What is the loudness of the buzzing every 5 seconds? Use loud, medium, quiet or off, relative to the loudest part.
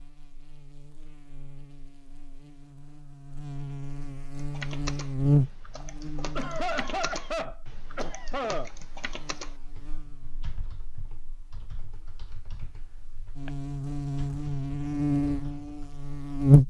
quiet, medium, quiet, loud.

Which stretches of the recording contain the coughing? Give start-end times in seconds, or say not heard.
6.3-8.7.